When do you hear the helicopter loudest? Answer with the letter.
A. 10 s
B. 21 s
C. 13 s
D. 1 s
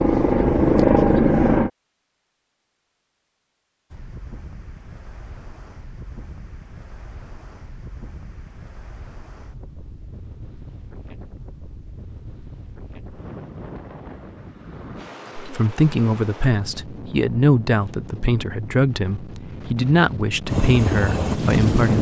D.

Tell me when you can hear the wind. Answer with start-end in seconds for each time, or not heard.
3.9-21.9.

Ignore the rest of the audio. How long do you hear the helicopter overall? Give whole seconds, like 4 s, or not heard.
3 s.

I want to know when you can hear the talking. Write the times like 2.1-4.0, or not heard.
15.3-21.9.